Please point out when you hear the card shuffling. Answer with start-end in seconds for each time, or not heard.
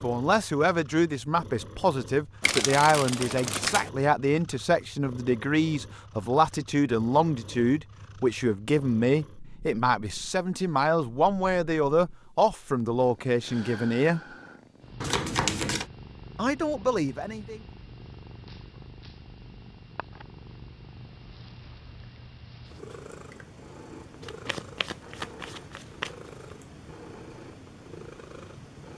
2.4-3.9, 15.0-15.9, 24.2-26.1.